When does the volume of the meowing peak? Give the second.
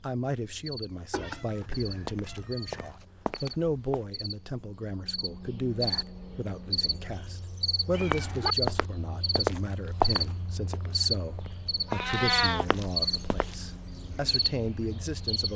12 s.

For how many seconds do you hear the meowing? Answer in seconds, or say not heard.
3 s.